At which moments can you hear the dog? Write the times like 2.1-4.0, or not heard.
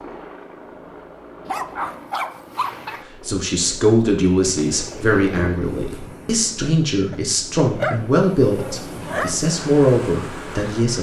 1.4-3.0, 7.1-9.3.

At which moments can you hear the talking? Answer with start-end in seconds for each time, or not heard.
3.2-10.9.